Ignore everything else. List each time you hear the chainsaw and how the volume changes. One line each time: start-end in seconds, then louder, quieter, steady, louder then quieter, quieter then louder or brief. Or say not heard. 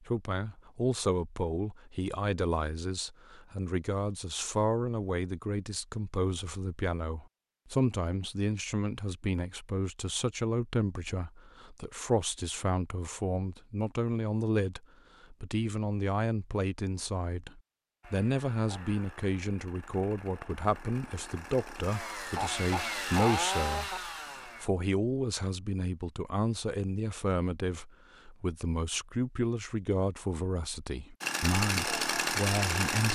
18.0-24.7 louder
31.2-33.0 brief.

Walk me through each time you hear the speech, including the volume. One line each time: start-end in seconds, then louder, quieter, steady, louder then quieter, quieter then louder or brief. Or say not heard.
0.1-33.0 steady.